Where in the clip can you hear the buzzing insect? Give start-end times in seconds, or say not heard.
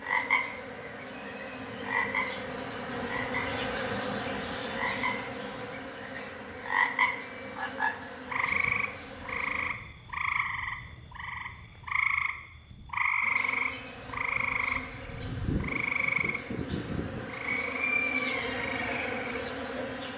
0.0-9.7, 13.2-20.1.